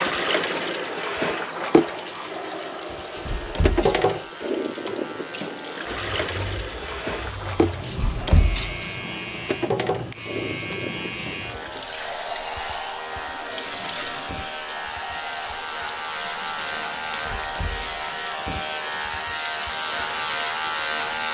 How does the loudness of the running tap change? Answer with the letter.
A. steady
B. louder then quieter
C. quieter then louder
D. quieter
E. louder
D.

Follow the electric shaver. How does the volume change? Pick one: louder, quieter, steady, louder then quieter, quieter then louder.
louder.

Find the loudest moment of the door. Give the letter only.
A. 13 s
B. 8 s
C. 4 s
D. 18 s
B.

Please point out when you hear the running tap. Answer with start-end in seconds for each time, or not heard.
0.0-21.3.